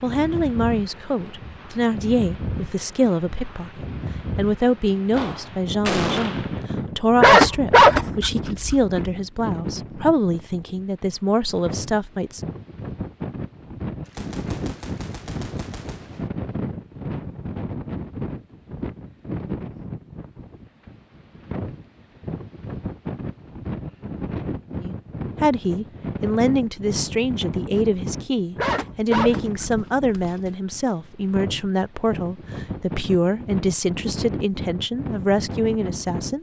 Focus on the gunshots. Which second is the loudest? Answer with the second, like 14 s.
6 s.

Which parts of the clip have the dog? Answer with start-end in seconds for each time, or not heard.
7.2-9.1, 28.6-30.5.